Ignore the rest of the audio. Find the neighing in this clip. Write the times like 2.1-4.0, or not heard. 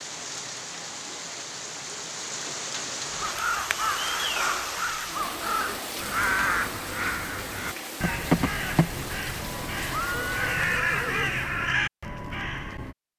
9.9-11.3.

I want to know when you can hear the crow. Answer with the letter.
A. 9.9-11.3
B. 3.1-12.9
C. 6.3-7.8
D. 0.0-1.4
B.